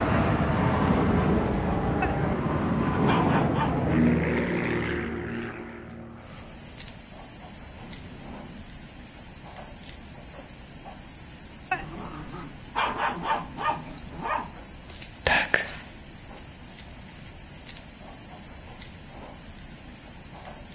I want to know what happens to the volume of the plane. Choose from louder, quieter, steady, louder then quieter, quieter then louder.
quieter.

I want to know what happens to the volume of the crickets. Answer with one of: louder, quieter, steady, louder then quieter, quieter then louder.
louder then quieter.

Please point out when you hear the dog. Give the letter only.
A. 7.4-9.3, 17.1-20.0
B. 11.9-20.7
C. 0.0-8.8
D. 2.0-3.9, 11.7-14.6
D.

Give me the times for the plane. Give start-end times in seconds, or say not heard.
0.0-8.8.